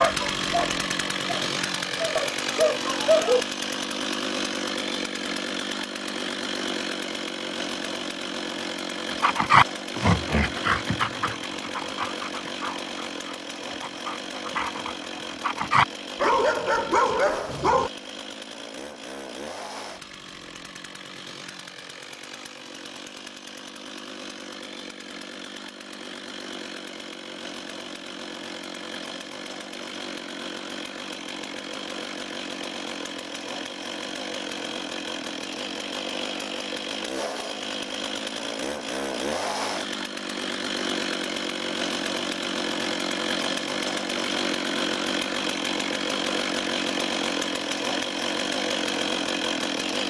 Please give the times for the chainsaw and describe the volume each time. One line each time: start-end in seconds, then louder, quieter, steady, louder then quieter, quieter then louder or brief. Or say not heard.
0.0-50.0 quieter then louder.